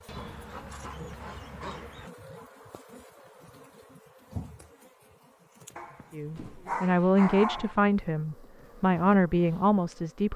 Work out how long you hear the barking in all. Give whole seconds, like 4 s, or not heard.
4 s.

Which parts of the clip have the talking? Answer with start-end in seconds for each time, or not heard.
6.1-10.3.